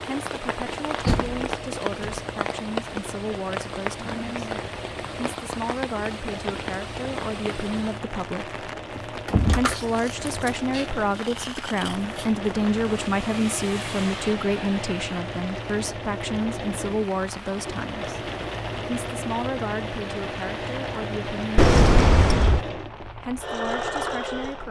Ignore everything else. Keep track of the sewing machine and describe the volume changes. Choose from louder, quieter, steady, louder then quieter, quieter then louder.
louder.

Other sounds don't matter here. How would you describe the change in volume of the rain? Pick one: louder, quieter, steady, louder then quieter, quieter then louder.
quieter.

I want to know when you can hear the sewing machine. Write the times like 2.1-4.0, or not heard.
0.0-24.6.